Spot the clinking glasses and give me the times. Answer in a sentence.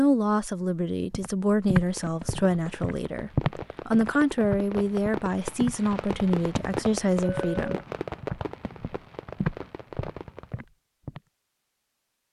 The clinking glasses can be heard from 7.2 to 7.8 s.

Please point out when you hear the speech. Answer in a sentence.
You can hear the speech from 0.0 to 7.8 s.